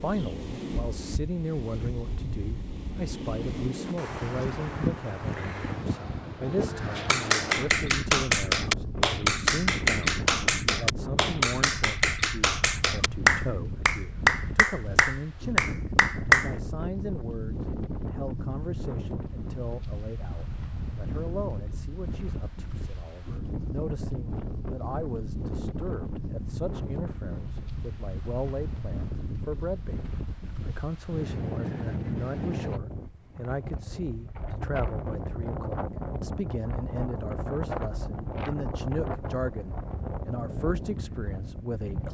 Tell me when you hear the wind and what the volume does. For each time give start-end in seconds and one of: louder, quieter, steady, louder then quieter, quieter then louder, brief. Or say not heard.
0.0-42.0 steady.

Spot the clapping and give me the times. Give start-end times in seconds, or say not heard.
7.0-16.5.